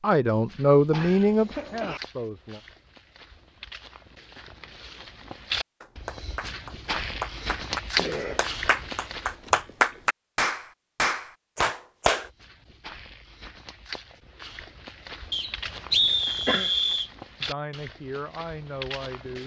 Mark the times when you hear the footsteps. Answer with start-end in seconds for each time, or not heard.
0.3-9.4, 12.2-19.4.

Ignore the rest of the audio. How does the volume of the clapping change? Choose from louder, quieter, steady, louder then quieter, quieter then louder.
louder.